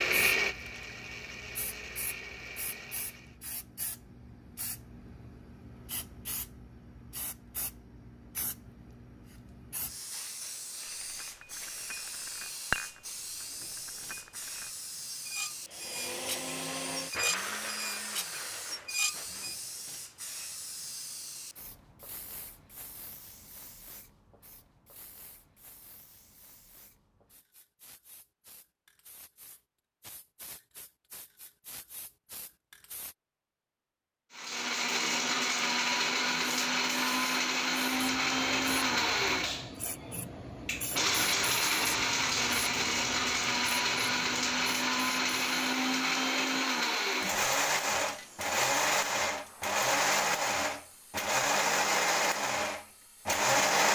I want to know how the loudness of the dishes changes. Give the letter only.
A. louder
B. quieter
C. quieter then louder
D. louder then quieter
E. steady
C.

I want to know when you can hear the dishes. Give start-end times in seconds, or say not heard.
11.2-19.6.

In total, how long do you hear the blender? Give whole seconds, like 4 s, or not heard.
27 s.